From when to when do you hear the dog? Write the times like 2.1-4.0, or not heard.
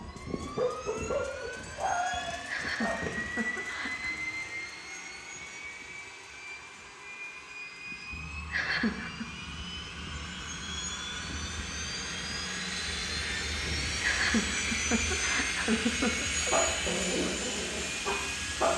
0.0-3.0, 16.4-18.7.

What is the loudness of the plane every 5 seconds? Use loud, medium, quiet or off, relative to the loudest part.
medium, medium, loud, loud.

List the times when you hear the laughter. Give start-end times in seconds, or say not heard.
2.5-4.2, 8.5-9.2, 14.0-16.6.